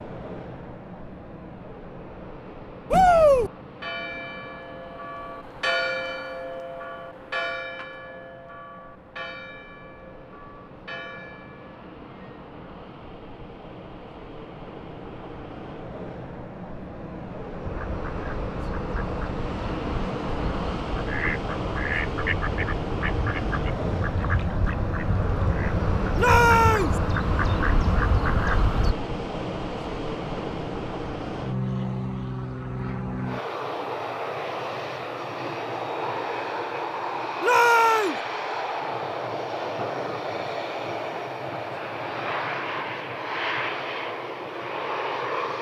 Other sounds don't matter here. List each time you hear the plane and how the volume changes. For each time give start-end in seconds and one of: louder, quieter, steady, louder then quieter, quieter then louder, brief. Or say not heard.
0.0-45.5 louder.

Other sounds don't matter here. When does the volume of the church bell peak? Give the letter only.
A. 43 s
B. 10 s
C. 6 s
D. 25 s
C.